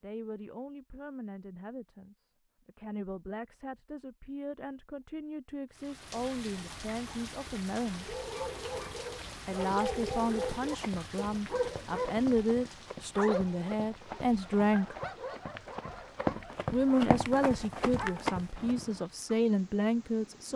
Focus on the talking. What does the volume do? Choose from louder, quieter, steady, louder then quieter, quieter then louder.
louder.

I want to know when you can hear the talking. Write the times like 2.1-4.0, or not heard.
0.0-8.2, 9.4-14.9, 16.7-20.5.